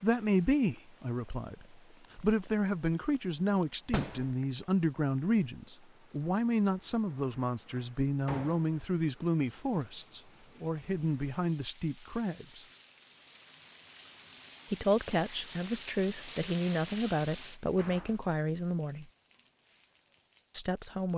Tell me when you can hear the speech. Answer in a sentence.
The speech can be heard from 0.0 to 12.7 s, from 14.7 to 19.1 s and from 20.5 to 21.1 s.